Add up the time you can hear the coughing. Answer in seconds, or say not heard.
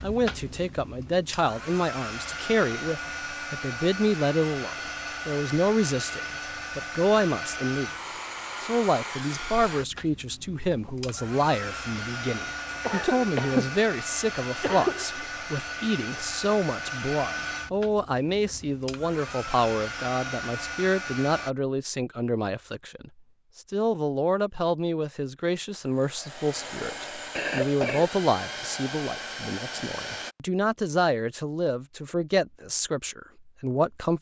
3 s.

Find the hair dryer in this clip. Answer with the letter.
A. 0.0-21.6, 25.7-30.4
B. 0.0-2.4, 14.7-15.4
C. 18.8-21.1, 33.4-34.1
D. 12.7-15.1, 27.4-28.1
A.